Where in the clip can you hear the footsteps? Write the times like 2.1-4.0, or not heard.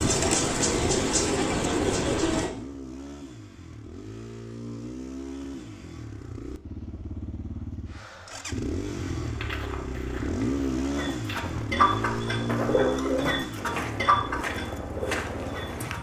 9.0-15.9.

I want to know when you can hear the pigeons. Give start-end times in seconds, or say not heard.
0.0-2.5, 10.9-15.9.